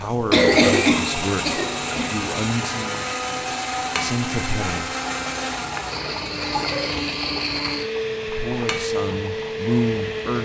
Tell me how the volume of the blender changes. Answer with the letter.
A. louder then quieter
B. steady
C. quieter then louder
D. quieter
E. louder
B.